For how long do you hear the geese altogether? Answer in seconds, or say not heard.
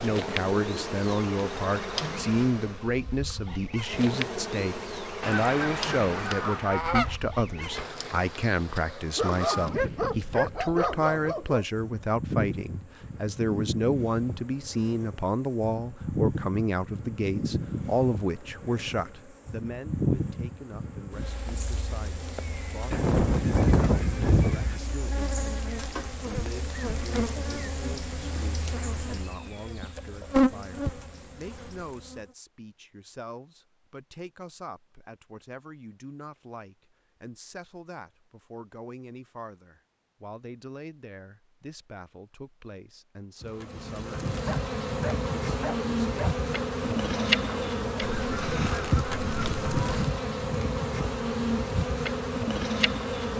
6 s.